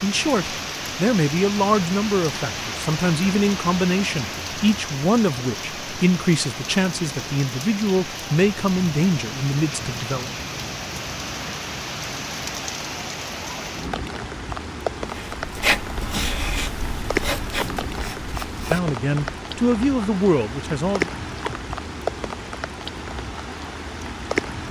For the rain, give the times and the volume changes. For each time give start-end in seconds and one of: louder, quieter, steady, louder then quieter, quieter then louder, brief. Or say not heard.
0.0-24.6 steady.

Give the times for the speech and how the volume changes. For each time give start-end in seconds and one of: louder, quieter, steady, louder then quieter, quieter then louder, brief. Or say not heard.
0.0-10.3 steady
18.5-21.1 brief.